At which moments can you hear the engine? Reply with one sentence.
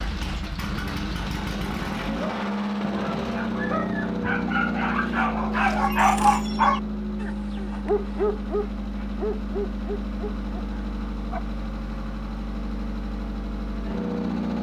The engine can be heard from 0.0 to 14.5 s.